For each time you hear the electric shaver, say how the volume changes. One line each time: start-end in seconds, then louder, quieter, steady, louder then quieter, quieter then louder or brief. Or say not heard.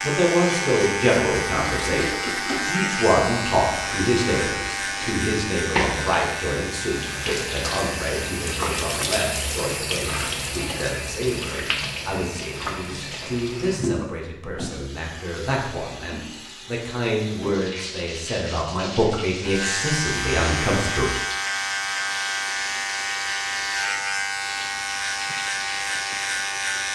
0.0-8.6 quieter
19.4-26.8 steady.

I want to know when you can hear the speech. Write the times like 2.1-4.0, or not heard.
0.0-21.1.